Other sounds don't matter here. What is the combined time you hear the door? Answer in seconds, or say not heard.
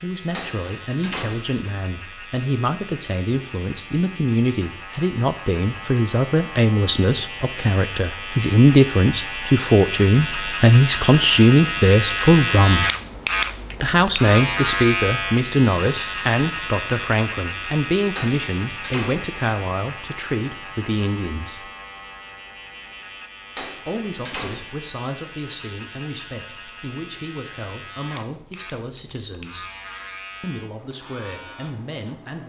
4 s.